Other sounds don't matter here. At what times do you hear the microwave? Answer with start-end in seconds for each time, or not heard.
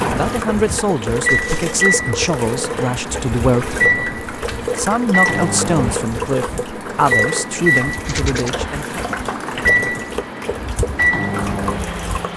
0.0-12.3.